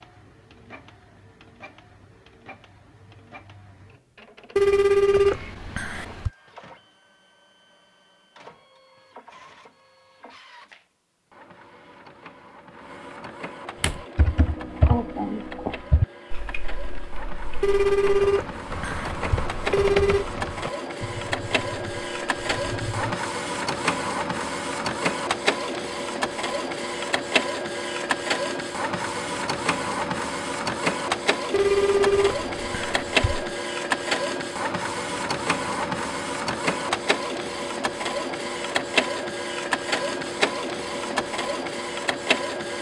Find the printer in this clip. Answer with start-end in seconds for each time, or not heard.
0.0-42.7.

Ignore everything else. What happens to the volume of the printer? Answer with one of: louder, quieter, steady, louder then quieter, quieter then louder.
louder.